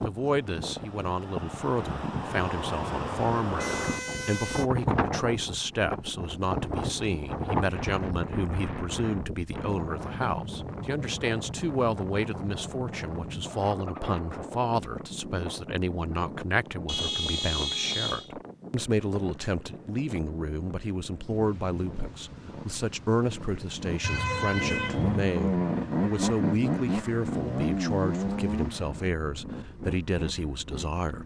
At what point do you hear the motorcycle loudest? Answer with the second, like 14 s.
26 s.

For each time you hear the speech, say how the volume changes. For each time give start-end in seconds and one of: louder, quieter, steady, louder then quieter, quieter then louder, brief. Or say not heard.
0.0-31.2 steady.